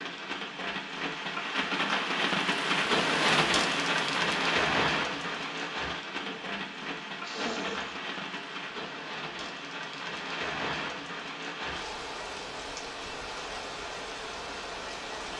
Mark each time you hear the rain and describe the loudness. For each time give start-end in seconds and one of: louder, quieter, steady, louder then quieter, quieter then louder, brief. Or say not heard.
0.0-15.3 quieter.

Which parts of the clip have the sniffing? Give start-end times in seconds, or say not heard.
6.2-8.0.